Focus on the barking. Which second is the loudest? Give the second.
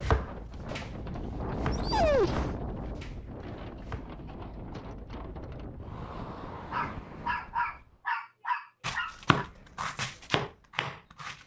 2 s.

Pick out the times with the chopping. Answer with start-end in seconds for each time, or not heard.
0.0-4.2, 8.8-11.4.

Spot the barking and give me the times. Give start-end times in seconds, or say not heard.
1.7-2.5, 6.7-9.4.